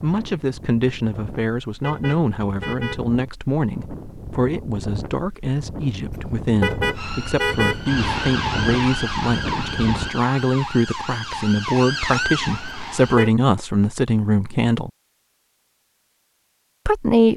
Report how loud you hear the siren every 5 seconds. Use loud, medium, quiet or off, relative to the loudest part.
off, loud, loud, off.